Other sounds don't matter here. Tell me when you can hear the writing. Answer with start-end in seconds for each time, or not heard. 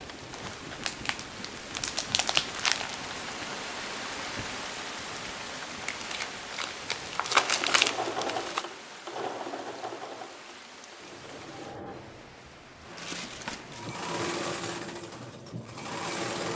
not heard.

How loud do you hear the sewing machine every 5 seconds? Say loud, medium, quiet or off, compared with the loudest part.
off, loud, loud, loud.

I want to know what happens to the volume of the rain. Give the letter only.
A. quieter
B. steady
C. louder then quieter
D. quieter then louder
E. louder
A.